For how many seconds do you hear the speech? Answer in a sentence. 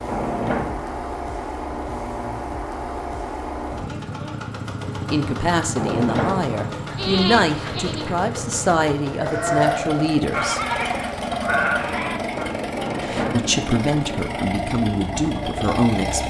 The speech can be heard for 9 seconds in total.